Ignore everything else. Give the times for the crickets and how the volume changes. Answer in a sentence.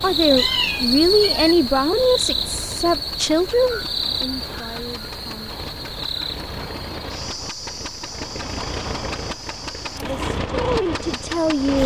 The crickets can be heard from 0.0 to 11.8 s, getting quieter.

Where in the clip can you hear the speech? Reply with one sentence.
The speech can be heard from 0.0 to 5.5 s and from 9.9 to 11.8 s.